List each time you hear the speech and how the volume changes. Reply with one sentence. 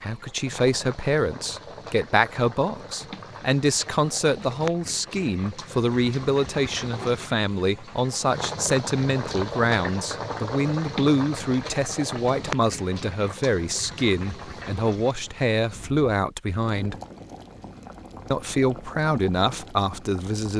You can hear the speech from 0.0 to 16.9 s, at a steady volume; and briefly from 18.3 to 20.5 s.